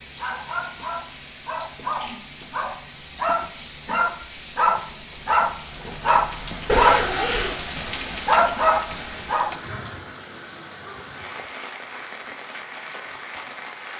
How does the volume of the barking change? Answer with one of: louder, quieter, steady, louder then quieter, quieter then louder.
louder.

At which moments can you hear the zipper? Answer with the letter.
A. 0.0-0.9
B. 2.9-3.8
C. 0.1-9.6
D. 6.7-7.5
D.